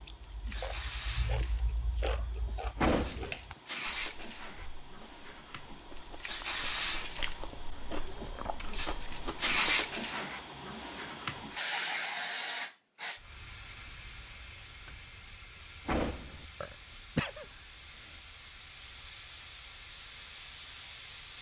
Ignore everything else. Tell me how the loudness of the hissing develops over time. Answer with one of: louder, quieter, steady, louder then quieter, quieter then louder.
louder then quieter.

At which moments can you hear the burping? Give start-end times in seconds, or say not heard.
16.6-17.4.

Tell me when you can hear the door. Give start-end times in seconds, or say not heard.
2.8-3.4, 15.8-16.4.